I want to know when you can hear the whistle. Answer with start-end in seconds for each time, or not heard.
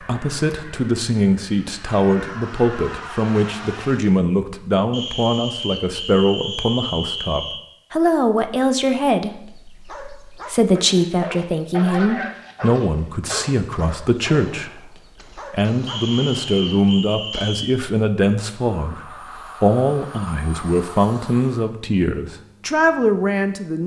4.9-7.6, 15.8-17.8.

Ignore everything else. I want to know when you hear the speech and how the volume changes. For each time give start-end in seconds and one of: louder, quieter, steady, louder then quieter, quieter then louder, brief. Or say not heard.
0.0-23.8 steady.